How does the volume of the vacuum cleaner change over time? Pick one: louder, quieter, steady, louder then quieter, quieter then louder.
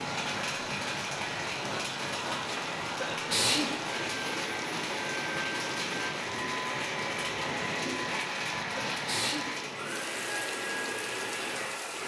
steady.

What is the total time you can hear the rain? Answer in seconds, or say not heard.
12 s.